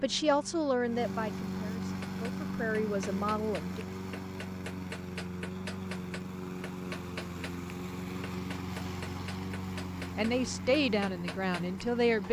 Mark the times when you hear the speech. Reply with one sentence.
You can hear the speech from 0.0 to 3.9 s and from 10.2 to 12.2 s.